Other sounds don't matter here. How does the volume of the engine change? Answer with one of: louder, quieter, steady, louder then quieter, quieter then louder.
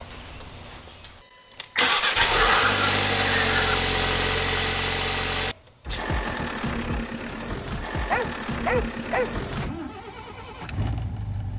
quieter.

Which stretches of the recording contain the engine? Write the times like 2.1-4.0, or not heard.
0.0-11.5.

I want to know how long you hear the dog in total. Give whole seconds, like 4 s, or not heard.
3 s.